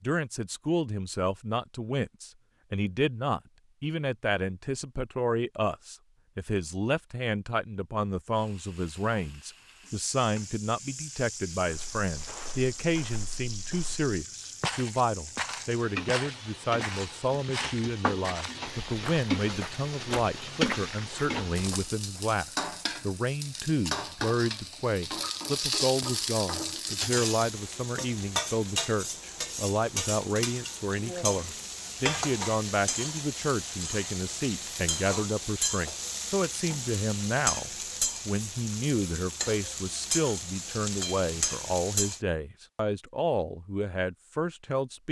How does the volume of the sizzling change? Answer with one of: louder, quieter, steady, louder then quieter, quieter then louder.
louder.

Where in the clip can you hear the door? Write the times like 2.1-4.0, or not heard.
not heard.